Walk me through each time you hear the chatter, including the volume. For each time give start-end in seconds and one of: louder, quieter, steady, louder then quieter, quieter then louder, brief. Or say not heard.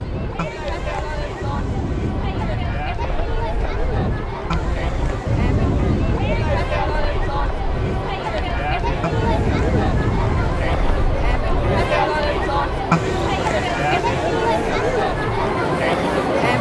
0.0-16.5 louder.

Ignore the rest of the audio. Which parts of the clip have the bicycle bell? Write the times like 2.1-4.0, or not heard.
not heard.